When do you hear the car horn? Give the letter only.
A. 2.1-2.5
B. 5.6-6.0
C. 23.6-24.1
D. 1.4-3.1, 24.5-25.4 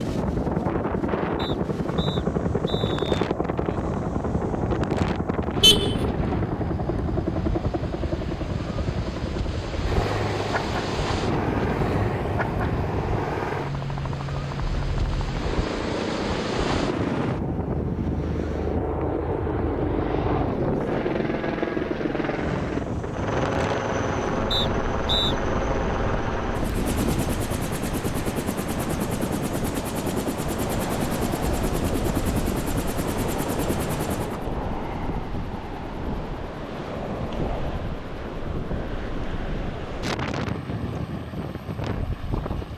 B.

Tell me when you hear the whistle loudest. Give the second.
25 s.